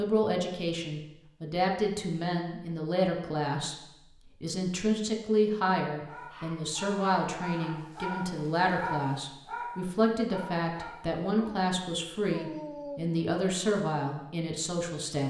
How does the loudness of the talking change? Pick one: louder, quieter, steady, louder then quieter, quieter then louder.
steady.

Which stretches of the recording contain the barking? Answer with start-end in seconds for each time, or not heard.
6.0-13.2.